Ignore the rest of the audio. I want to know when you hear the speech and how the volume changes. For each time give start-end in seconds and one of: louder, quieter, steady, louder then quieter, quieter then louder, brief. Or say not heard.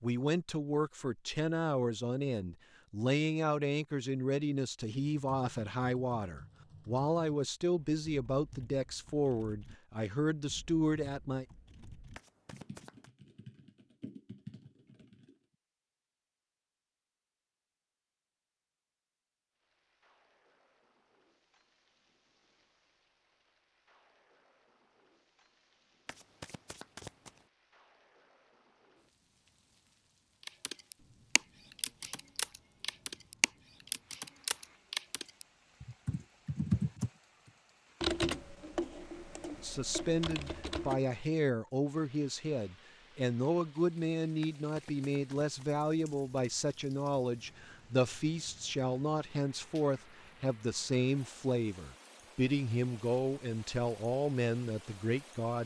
0.0-11.4 steady
39.6-55.6 steady.